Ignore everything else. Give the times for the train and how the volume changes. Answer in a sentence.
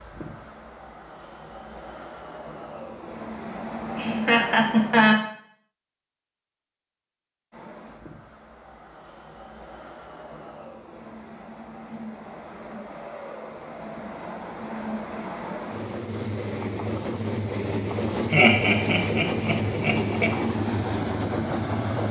You can hear the train from 0.0 to 5.2 s, getting louder; and from 7.5 to 22.0 s, getting louder.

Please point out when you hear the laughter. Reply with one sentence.
The laughter can be heard from 4.0 to 5.2 s and from 18.3 to 20.3 s.